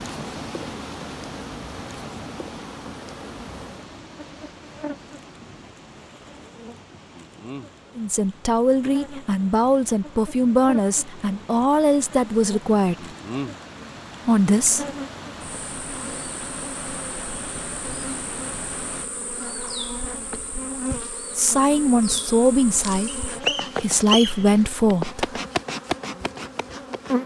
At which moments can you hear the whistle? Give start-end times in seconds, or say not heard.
23.1-24.5.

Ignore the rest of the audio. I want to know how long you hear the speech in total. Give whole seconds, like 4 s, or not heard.
10 s.